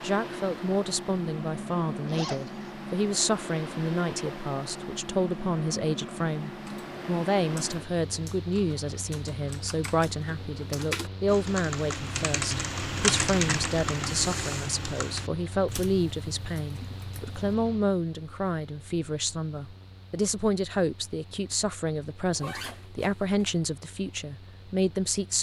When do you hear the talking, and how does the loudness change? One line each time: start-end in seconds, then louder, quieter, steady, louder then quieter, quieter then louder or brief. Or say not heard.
0.0-25.3 steady.